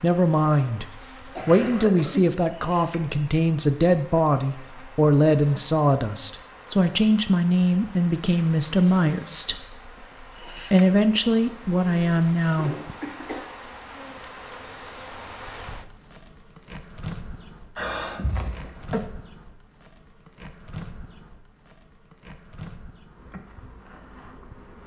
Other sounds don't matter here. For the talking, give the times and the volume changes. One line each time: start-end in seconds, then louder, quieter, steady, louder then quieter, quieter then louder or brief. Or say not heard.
0.0-9.8 steady
10.6-12.8 brief.